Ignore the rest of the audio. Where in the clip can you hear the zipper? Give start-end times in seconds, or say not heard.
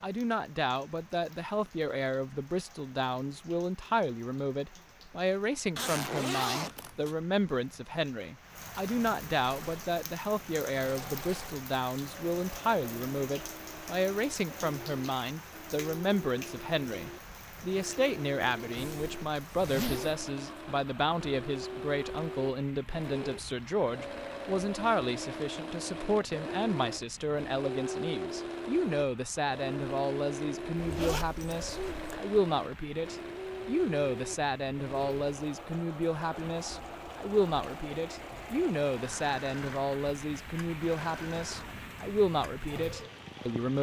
5.8-7.2, 18.8-20.2, 30.8-32.2.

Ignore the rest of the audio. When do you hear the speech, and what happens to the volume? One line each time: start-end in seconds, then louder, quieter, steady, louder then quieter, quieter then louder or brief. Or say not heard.
0.0-43.7 steady.